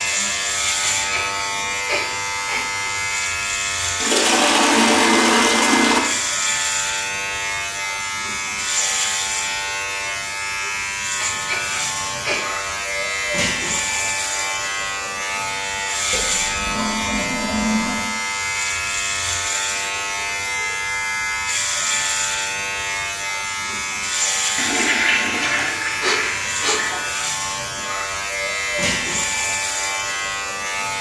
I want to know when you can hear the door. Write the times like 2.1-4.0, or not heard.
not heard.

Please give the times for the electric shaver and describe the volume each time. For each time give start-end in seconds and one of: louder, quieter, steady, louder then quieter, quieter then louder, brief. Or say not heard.
0.0-30.9 steady.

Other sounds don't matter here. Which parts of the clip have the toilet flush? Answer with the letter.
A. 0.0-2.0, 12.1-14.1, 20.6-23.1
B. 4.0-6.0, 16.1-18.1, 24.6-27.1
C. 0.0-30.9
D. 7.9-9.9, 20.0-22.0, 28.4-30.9
B.